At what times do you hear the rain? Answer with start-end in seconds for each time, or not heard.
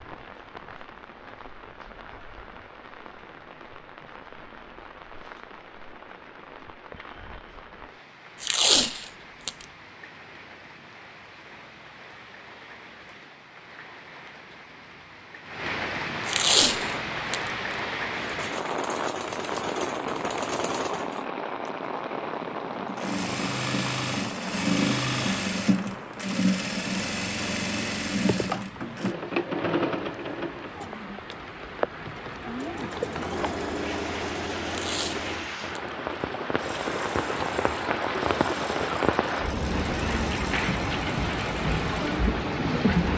0.0-43.1.